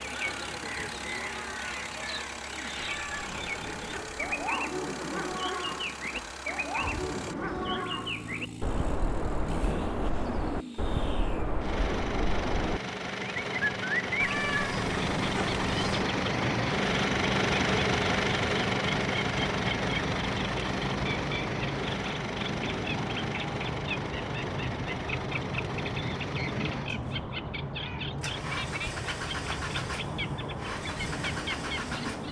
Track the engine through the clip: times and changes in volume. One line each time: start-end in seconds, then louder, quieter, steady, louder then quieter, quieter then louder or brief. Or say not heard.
0.0-32.2 louder then quieter.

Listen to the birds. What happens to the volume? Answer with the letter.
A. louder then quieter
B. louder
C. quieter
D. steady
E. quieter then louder
D.